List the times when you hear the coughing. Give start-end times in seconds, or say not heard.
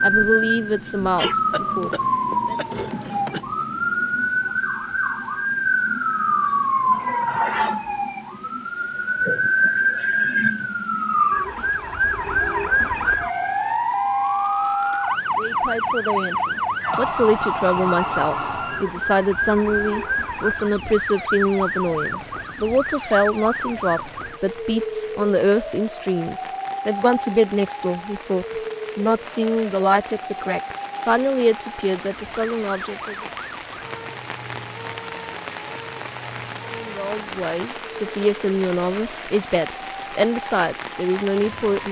1.5-3.5.